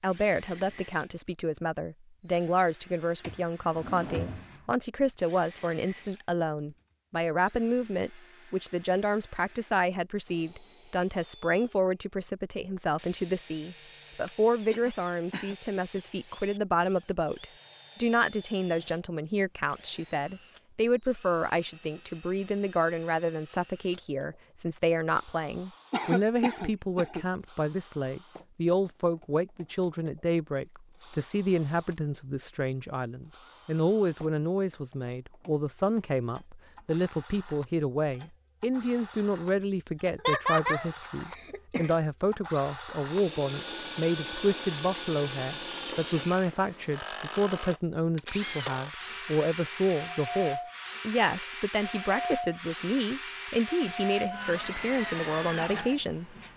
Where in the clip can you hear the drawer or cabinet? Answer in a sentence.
You can hear the drawer or cabinet from 3.2 to 4.7 s.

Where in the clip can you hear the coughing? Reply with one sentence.
The coughing can be heard from 14.2 to 16.0 s, from 25.9 to 27.2 s and from 40.1 to 42.0 s.